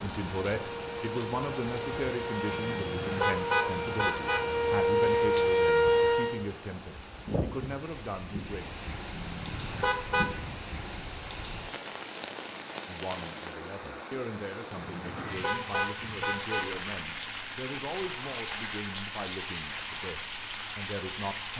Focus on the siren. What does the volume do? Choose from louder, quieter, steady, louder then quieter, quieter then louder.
louder.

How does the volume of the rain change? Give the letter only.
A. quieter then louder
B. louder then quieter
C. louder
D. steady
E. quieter
D.